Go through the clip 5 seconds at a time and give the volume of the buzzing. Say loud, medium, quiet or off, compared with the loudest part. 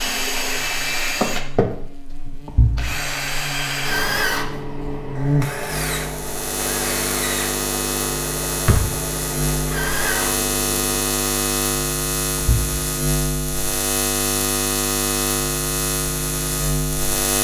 quiet, loud, loud, loud.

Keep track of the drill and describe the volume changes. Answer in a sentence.
The volume of the drill goes down.